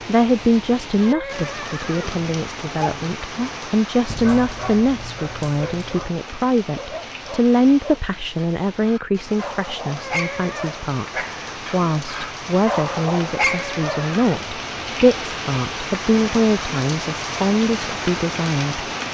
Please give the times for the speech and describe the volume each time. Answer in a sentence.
You can hear the speech from 0.1 to 18.9 s, at a steady volume.